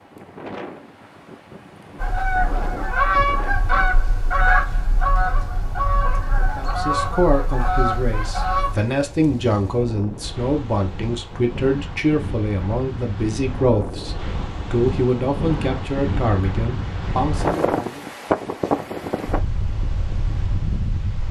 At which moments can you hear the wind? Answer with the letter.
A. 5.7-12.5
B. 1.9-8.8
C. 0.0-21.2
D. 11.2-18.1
C.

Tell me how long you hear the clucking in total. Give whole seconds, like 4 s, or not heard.
7 s.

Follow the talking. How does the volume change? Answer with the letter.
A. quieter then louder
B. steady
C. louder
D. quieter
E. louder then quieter
B.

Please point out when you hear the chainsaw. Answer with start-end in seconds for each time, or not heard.
not heard.